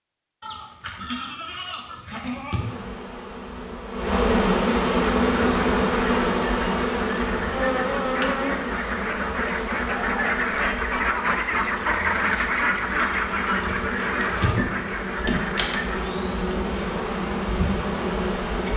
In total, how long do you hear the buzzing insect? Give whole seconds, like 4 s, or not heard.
16 s.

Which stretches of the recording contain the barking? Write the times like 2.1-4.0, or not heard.
not heard.